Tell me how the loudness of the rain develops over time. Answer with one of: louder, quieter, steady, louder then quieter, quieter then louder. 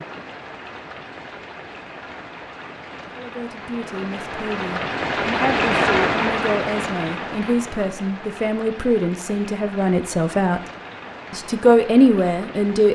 louder then quieter.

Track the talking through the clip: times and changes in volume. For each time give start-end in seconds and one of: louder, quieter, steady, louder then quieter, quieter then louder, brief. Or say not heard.
3.1-10.6 louder
11.3-12.9 brief.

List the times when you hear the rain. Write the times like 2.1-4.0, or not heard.
0.0-12.9.